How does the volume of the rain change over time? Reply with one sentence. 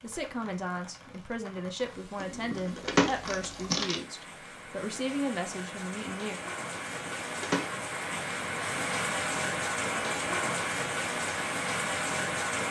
The loudness of the rain goes up.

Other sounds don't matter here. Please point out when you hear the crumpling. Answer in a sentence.
You can hear the crumpling from 2.2 to 4.0 s and from 6.8 to 7.7 s.